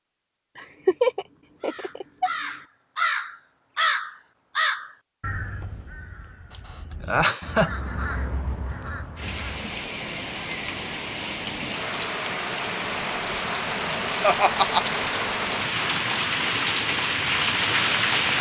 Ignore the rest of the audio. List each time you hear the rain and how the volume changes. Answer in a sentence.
The rain can be heard from 9.2 to 18.3 s, getting louder.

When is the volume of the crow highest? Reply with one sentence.
The volume of the crow peaks at 4 seconds.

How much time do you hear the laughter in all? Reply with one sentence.
You can hear the laughter for 4 seconds altogether.